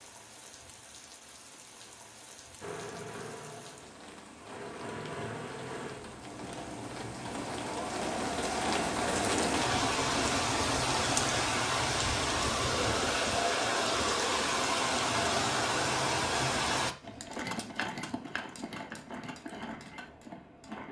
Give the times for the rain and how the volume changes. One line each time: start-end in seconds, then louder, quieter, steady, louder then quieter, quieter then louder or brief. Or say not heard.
0.0-16.9 louder.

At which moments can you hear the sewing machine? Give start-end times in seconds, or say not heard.
2.6-11.2, 17.0-20.8.